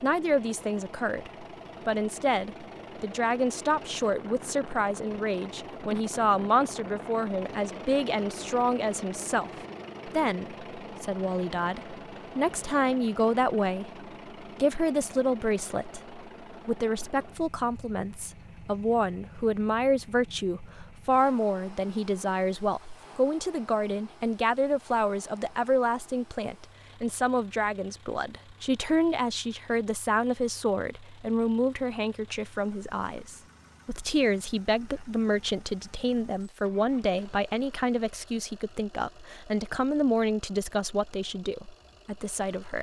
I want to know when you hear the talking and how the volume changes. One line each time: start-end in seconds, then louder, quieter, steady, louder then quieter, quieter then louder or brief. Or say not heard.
0.0-42.7 steady.